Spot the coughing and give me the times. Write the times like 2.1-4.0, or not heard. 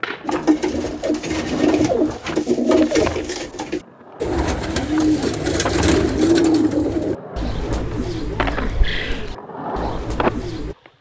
not heard.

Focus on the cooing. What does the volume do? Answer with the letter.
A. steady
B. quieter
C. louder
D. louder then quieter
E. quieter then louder
B.